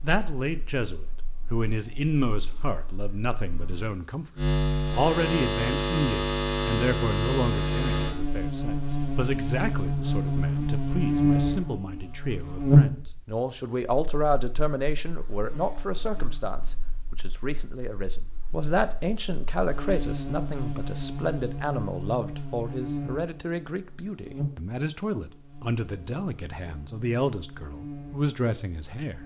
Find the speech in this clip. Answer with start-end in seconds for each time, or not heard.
0.0-4.3, 5.0-29.2.